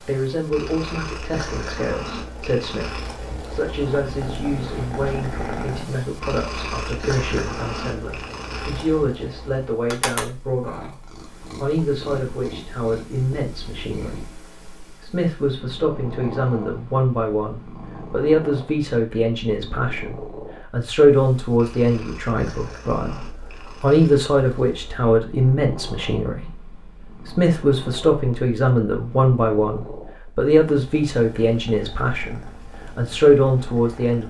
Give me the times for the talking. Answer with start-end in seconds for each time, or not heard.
0.1-34.2.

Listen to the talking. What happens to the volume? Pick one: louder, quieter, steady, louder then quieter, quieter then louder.
louder.